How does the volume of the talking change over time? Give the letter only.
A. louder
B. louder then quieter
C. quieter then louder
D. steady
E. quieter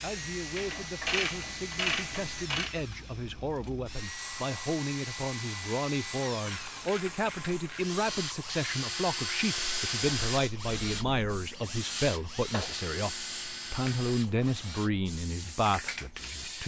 A.